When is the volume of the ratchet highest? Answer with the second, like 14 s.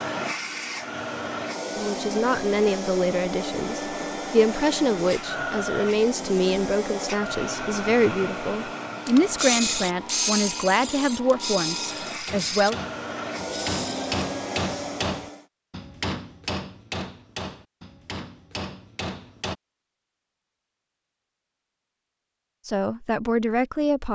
10 s.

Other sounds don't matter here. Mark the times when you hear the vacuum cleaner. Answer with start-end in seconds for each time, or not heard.
0.0-15.4.